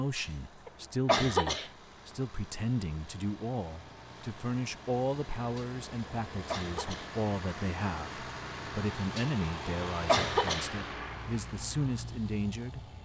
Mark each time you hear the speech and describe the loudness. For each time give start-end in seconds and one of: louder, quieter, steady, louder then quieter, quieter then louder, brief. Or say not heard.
0.0-12.9 steady.